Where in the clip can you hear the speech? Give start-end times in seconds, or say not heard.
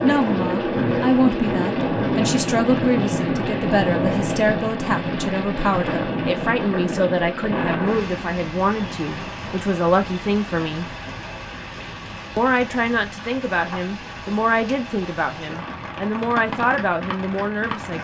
0.0-10.9, 12.3-17.9.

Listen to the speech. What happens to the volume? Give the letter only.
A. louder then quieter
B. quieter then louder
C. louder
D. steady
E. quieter
D.